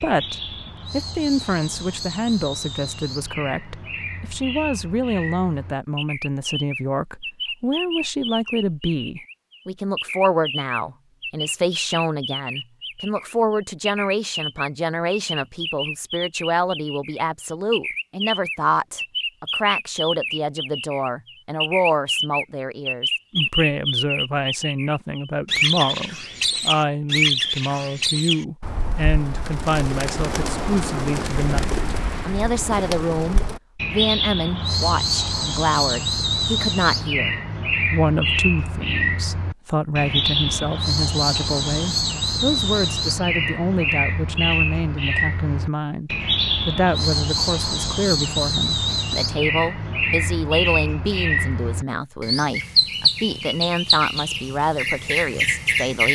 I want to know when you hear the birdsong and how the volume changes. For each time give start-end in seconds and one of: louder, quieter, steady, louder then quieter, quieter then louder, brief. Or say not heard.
0.0-56.0 louder.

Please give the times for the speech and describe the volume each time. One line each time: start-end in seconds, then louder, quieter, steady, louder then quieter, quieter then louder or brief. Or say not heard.
0.0-56.0 steady.